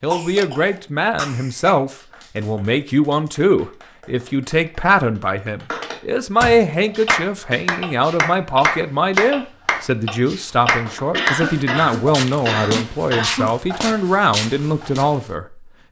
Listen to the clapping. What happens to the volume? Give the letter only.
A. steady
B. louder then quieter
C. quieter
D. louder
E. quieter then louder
D.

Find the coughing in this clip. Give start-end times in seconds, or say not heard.
0.1-1.8, 11.1-13.6.